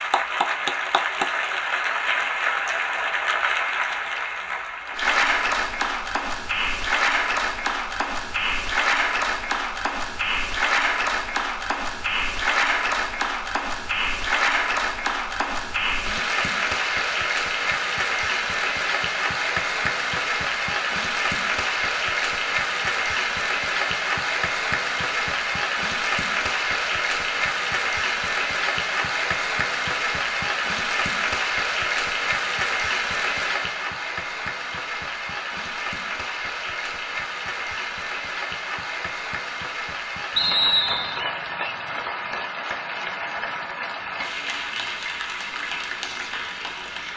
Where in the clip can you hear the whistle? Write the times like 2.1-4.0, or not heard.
40.4-41.2.